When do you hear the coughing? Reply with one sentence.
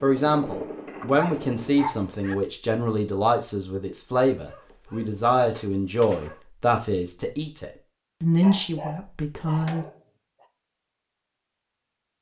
You can't hear the coughing here.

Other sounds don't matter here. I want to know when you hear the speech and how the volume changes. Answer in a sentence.
The speech can be heard from 0.0 to 9.8 s, at a steady volume.